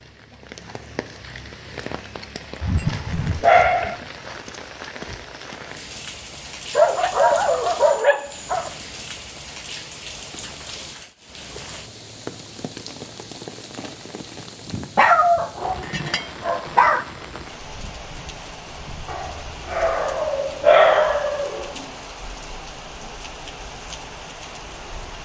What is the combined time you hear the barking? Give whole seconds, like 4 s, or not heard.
8 s.